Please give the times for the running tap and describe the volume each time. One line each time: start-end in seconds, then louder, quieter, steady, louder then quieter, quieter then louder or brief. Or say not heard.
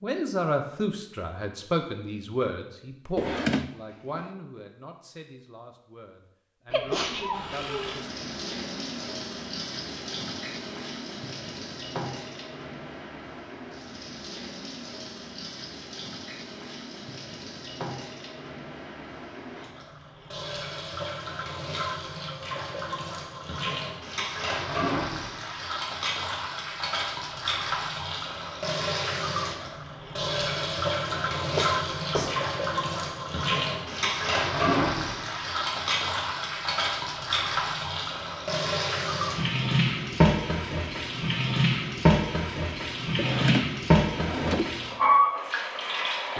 7.3-46.3 louder.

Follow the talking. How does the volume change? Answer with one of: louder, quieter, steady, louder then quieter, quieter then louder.
quieter then louder.